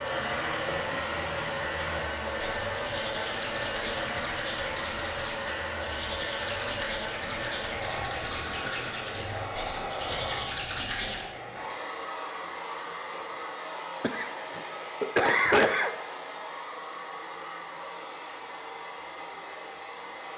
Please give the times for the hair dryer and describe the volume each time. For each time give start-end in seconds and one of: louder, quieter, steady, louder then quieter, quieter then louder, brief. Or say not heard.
0.0-20.3 quieter.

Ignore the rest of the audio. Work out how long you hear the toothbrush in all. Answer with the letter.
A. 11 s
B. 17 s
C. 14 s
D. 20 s
A.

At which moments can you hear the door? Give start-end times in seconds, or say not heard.
not heard.